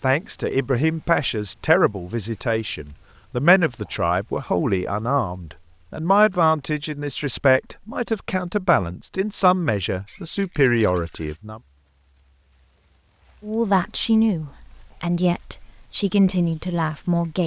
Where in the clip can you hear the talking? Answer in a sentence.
The talking can be heard from 0.0 to 11.6 s and from 13.4 to 17.4 s.